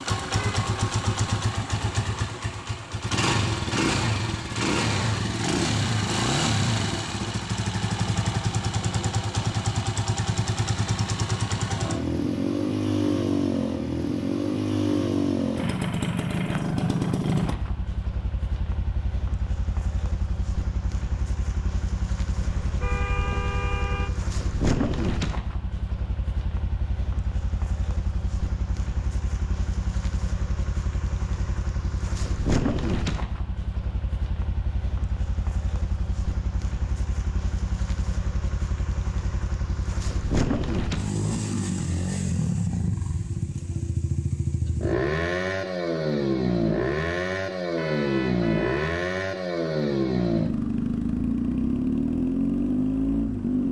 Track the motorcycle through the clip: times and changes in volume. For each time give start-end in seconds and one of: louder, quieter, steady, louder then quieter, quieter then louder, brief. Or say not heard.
0.0-53.6 quieter then louder.